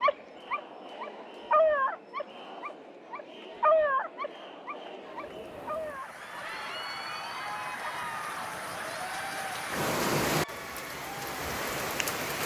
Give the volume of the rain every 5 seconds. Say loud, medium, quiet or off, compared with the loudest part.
off, medium, loud.